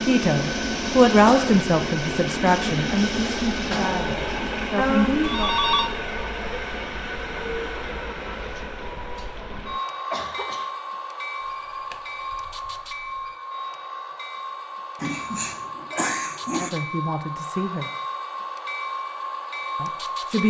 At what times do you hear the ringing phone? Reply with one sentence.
You can hear the ringing phone from 4.8 to 5.9 s and from 11.4 to 13.3 s.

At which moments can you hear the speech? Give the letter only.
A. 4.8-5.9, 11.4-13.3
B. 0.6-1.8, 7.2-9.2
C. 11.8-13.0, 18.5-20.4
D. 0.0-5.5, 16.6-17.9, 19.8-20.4
D.